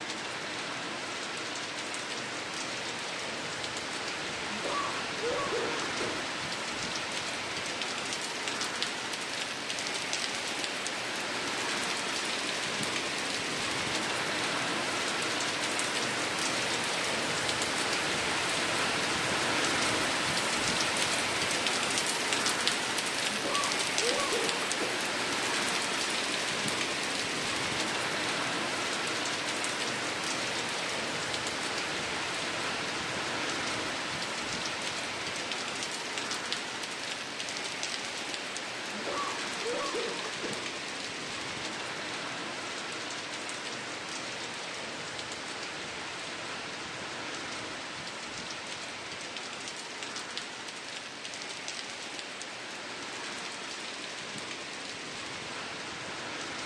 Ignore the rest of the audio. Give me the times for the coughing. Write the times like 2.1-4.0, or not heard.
4.5-6.2, 23.3-25.1, 38.9-40.6.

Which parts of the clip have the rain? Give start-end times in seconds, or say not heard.
0.0-56.6.